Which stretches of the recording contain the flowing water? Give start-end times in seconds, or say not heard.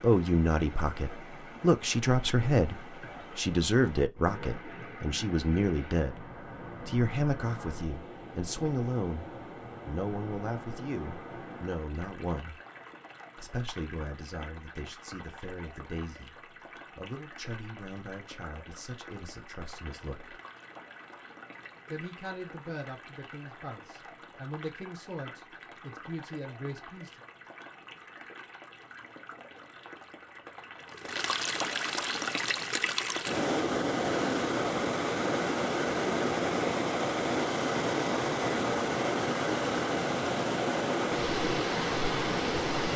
0.0-42.9.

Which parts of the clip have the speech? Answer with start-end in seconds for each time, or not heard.
0.0-9.2, 9.8-12.6, 13.3-20.4, 21.9-27.2.